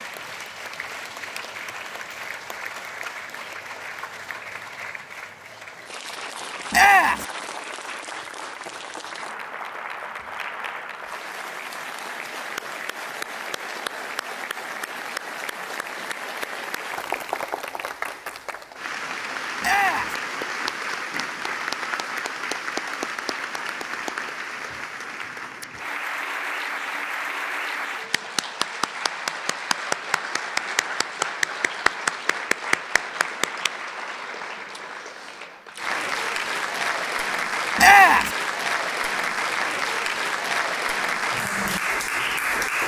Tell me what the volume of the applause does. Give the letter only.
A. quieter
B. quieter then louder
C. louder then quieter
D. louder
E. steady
D.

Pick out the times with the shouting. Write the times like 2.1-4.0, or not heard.
6.7-7.2, 19.6-20.1, 37.8-38.3.